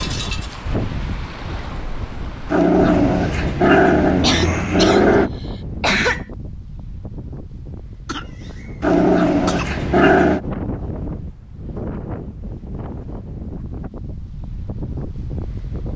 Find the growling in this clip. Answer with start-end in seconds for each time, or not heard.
2.5-5.3, 8.8-10.4.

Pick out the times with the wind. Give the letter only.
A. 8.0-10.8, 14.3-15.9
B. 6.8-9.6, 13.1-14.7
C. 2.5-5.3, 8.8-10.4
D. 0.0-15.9
D.